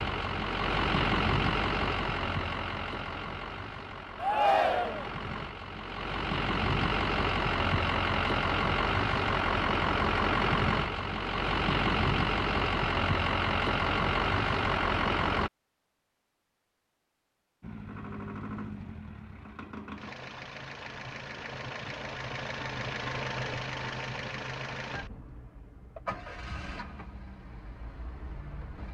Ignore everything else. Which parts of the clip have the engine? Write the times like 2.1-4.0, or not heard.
0.0-15.5, 17.6-28.8.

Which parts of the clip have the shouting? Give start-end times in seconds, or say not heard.
4.2-5.1.